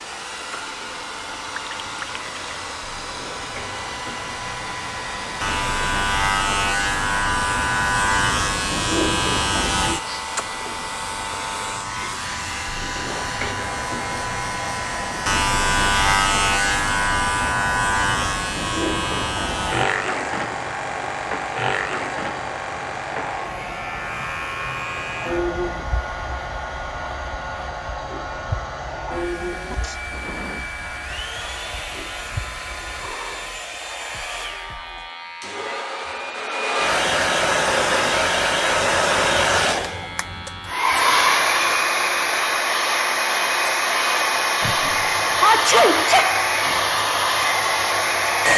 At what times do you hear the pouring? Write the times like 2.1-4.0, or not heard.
1.5-2.5.